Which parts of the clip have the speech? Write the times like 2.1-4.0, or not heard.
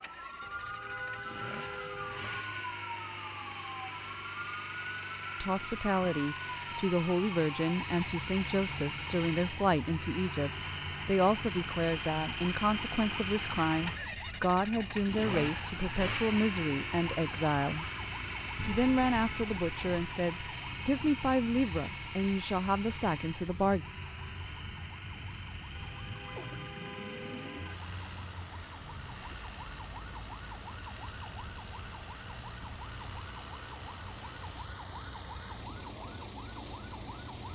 5.4-17.9, 18.6-23.9.